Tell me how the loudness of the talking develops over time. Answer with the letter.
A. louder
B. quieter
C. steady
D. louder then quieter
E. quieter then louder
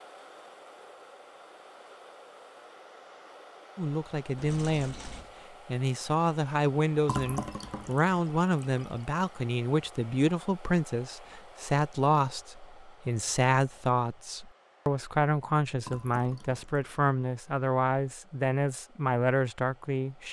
C.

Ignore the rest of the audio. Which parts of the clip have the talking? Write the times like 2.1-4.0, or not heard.
3.8-20.2.